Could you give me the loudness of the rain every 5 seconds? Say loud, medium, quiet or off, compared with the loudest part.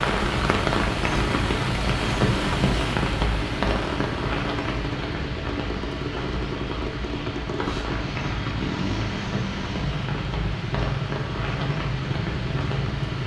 loud, medium, medium.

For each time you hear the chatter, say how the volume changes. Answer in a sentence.
You can't hear the chatter here.